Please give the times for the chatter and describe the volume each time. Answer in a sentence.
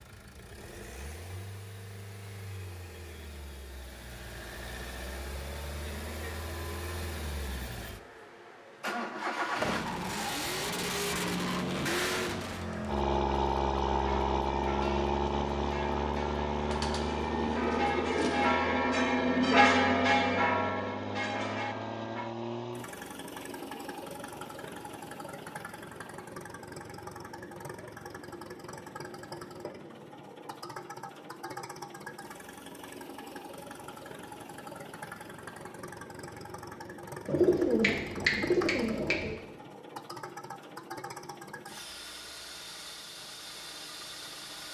You can't hear the chatter here.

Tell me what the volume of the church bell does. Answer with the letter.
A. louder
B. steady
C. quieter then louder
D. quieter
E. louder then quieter
E.